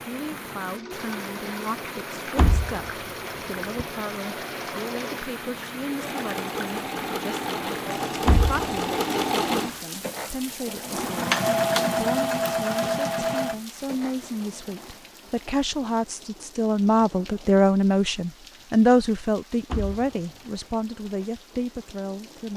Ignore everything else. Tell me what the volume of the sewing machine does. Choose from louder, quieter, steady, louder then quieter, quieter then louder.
louder.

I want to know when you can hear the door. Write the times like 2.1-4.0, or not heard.
2.4-3.9, 8.2-8.7, 19.6-20.2.